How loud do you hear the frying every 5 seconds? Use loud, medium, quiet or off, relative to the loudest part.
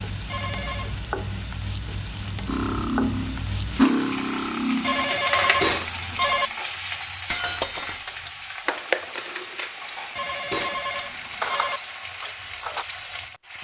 loud, loud, medium.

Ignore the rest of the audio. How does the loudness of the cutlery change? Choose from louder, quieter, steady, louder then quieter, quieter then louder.
quieter.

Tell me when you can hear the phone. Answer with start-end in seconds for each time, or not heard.
0.3-0.9, 4.8-6.5, 10.2-11.8.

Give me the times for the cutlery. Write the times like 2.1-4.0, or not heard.
2.5-12.8.